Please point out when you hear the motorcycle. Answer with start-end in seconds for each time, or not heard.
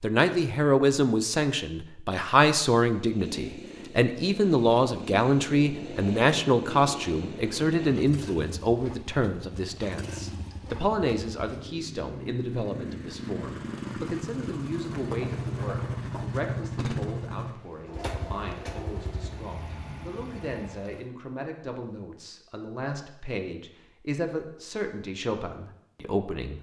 3.0-21.1.